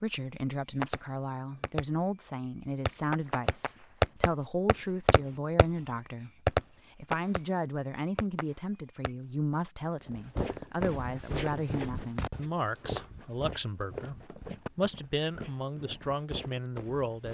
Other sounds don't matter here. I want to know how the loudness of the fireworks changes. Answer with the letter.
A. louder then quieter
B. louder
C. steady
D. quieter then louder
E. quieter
A.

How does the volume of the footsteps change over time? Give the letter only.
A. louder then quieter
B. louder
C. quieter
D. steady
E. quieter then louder
C.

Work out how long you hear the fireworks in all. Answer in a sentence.
You can hear the fireworks for 9 seconds altogether.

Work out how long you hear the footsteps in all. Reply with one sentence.
You can hear the footsteps for 7 seconds altogether.